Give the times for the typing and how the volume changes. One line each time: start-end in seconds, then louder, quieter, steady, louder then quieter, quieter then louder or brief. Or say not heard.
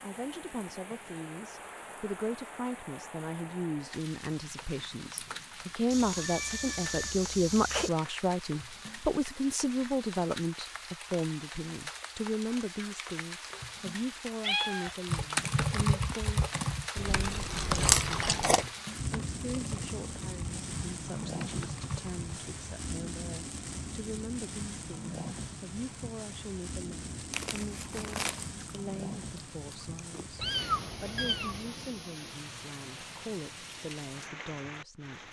14.8-22.3 quieter.